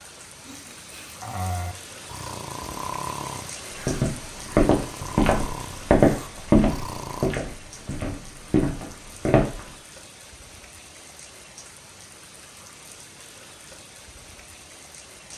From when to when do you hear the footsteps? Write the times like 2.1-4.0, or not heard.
3.8-9.6.